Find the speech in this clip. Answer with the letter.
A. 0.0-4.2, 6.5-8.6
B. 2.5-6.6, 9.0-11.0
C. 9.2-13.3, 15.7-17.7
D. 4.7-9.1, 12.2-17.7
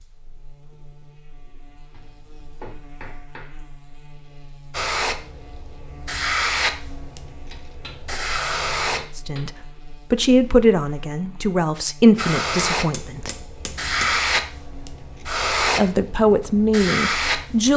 C.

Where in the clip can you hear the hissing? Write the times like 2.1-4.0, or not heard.
4.7-9.1, 12.2-17.7.